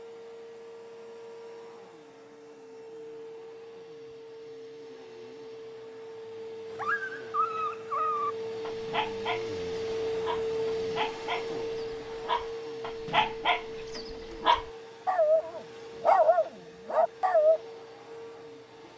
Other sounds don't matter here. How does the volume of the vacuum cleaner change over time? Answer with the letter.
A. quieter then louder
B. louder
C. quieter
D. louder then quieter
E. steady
D.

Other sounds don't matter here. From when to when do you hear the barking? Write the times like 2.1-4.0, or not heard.
6.8-17.6.